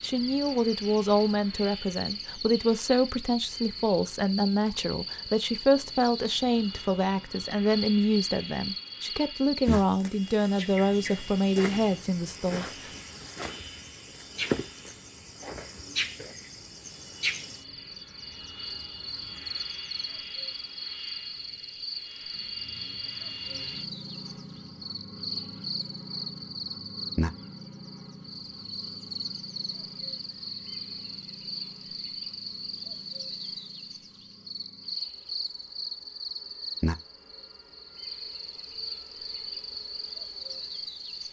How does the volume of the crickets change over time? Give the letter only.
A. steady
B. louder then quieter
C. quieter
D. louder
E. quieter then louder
A.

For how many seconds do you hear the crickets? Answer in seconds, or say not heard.
41 s.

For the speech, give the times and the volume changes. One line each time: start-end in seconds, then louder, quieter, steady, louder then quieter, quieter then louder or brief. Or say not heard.
0.0-12.9 steady.